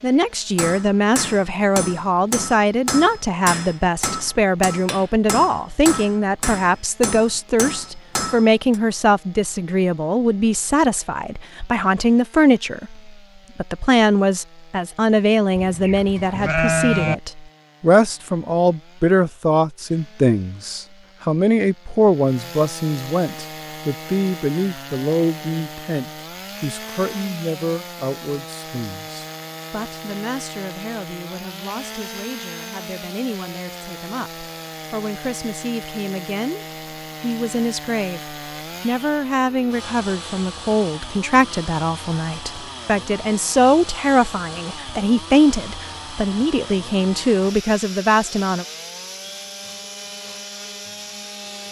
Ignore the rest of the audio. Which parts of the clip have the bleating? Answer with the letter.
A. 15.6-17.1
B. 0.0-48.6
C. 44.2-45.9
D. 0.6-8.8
A.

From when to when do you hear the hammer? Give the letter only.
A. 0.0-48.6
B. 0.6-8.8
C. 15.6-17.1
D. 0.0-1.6
B.